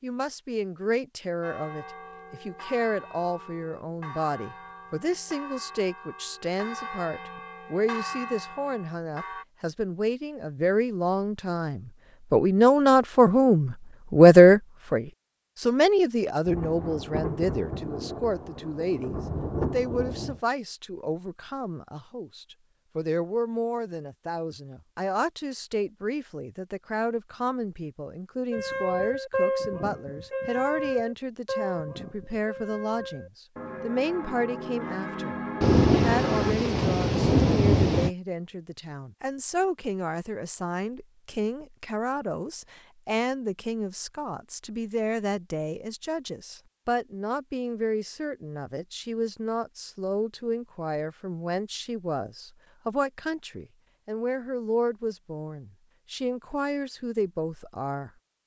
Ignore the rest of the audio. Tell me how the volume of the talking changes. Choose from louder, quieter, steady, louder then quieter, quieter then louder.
louder then quieter.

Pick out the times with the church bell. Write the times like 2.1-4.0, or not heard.
1.4-9.4, 28.5-36.5.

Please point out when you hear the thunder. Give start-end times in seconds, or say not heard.
16.4-20.4, 35.6-38.1.